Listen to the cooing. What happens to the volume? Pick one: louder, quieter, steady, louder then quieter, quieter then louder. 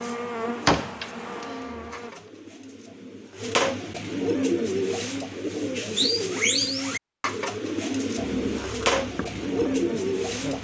louder.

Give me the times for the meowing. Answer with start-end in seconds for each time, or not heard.
not heard.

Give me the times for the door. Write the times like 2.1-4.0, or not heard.
0.7-1.9.